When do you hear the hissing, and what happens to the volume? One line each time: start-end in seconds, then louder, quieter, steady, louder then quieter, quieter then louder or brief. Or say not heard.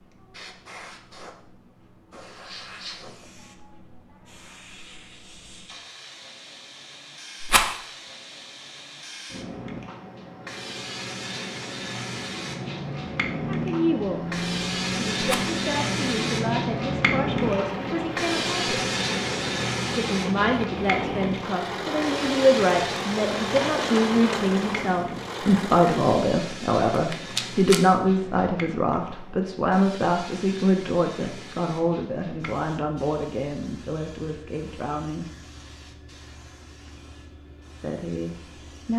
0.0-38.9 louder then quieter.